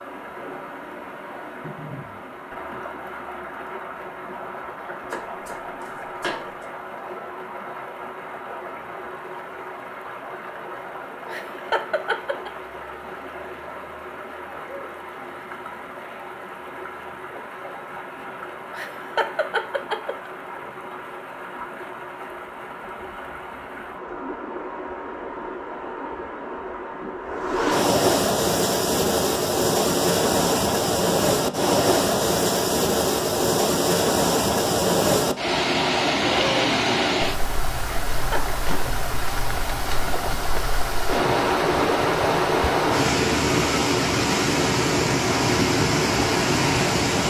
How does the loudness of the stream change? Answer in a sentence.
The loudness of the stream goes up.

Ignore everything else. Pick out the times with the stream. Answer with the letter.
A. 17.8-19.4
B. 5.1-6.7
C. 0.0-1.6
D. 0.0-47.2
D.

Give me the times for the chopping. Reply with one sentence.
You can hear the chopping from 5.1 to 6.7 s.